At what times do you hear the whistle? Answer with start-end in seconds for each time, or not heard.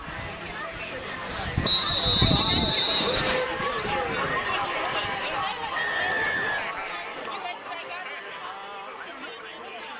1.6-3.5, 5.8-6.7.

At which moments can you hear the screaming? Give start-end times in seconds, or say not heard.
not heard.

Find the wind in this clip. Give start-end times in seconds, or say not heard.
0.0-6.5.